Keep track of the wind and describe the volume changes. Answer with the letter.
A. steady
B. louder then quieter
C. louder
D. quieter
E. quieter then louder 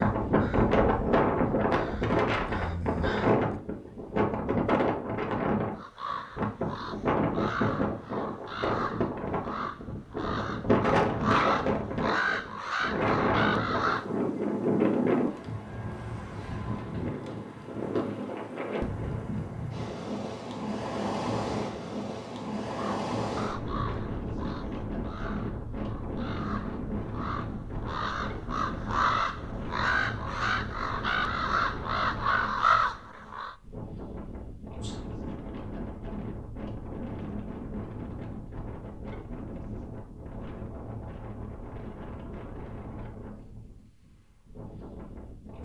D.